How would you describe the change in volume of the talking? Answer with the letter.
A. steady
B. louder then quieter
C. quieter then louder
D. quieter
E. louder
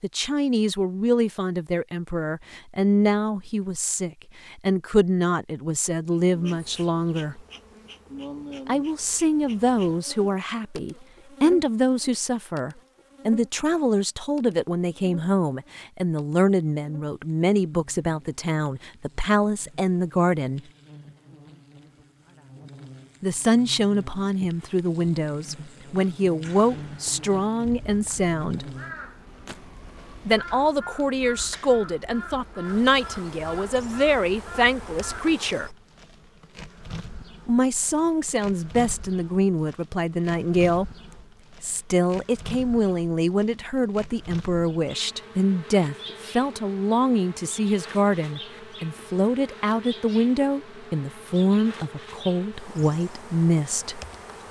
A.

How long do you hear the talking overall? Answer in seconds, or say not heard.
46 s.